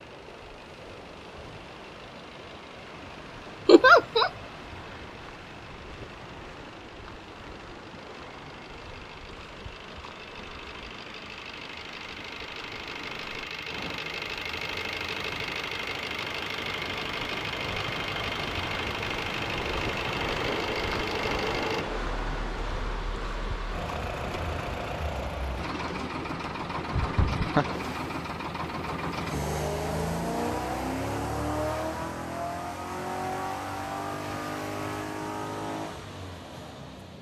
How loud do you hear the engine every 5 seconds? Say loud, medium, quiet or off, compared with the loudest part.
quiet, quiet, medium, loud, loud, loud, loud, medium.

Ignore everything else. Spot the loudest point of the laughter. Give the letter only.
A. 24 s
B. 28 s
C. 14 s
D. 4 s
D.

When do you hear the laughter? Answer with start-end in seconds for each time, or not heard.
3.6-4.3, 26.9-27.6.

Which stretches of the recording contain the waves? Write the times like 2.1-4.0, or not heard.
0.0-37.1.